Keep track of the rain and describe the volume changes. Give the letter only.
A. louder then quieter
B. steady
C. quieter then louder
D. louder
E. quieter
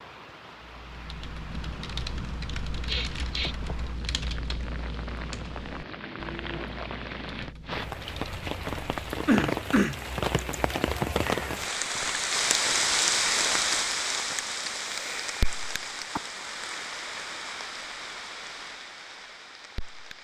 A.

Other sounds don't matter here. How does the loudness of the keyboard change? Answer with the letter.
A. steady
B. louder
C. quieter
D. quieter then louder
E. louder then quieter
C.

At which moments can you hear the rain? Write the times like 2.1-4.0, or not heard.
0.0-20.1.